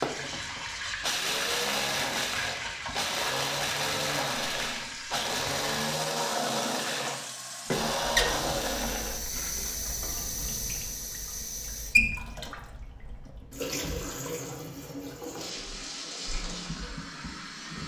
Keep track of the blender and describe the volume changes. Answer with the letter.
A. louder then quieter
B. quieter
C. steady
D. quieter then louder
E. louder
C.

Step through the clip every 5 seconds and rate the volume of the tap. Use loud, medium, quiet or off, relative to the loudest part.
loud, loud, loud, medium.